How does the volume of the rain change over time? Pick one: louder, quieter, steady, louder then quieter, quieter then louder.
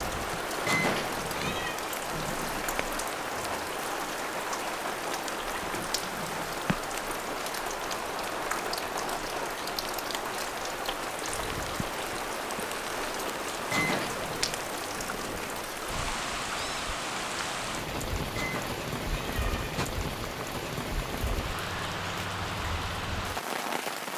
steady.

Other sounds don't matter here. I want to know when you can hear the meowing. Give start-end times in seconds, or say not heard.
0.7-1.8, 13.7-14.6, 18.4-19.9.